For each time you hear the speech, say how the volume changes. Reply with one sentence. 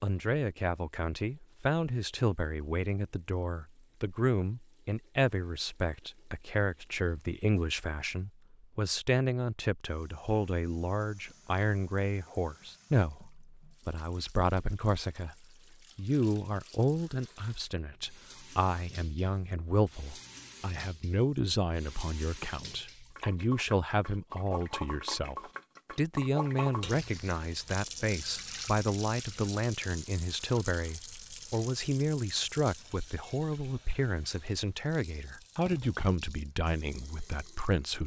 The speech can be heard from 0.0 to 15.3 s, at a steady volume; and from 15.9 to 38.0 s, at a steady volume.